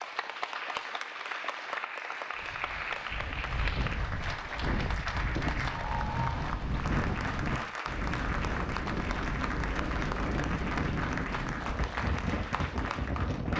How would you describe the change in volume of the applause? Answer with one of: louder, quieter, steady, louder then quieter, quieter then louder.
steady.